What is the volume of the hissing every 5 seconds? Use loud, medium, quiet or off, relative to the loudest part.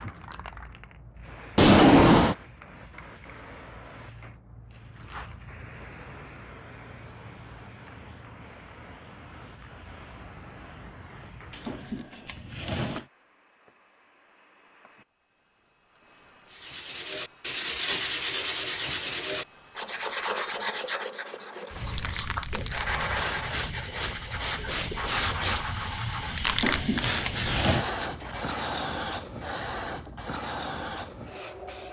quiet, quiet, quiet, quiet, medium, loud, medium.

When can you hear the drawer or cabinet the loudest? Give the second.
2 s.